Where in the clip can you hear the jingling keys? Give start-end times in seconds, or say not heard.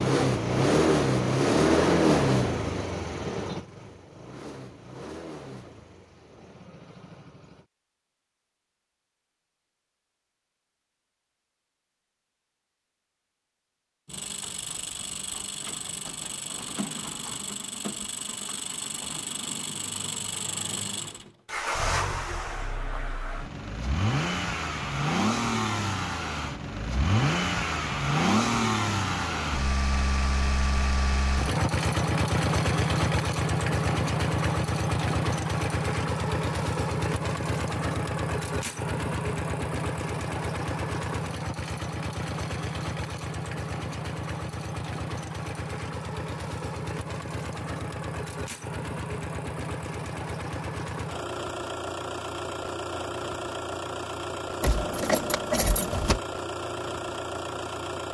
54.6-56.2.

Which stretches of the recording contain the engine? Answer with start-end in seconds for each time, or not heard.
0.0-7.7, 14.1-58.0.